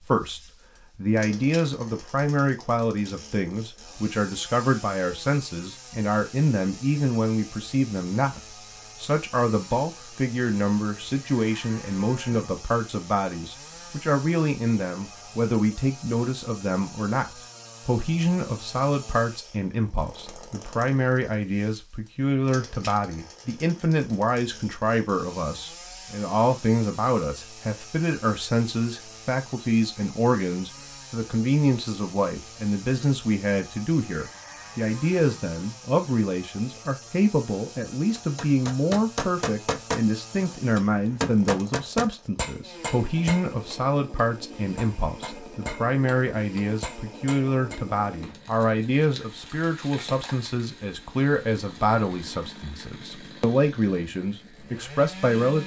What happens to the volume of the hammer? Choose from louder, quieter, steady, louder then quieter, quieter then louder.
quieter.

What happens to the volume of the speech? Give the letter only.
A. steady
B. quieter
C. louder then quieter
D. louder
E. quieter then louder
A.